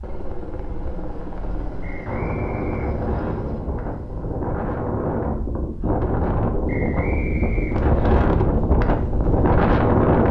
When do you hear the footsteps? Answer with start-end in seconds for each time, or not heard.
not heard.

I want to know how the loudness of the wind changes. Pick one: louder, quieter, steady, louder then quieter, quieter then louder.
louder.